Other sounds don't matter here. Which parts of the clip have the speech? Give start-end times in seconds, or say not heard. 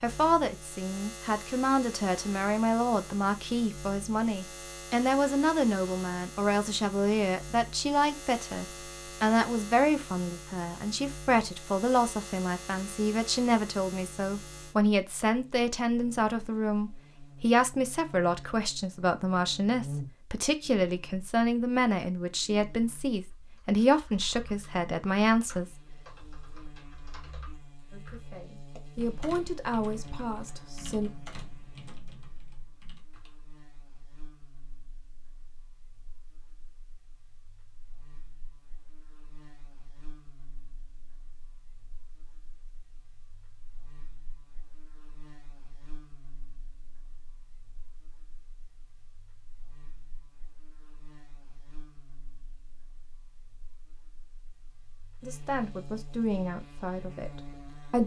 0.0-25.6, 27.9-31.1, 55.2-58.0.